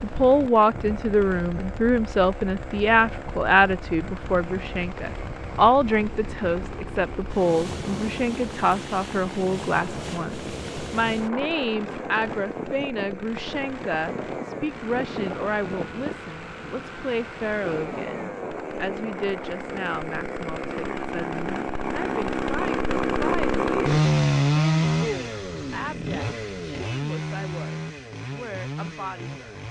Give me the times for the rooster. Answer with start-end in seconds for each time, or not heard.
not heard.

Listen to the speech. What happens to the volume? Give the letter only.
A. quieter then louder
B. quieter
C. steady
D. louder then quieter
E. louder
B.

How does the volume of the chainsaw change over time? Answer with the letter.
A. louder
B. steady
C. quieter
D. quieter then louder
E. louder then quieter
A.